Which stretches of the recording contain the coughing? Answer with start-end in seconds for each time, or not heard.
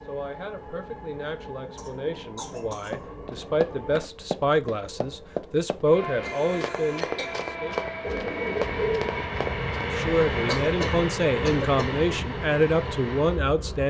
1.8-3.0, 6.2-7.5, 10.4-11.9.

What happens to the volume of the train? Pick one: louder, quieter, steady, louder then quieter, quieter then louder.
louder.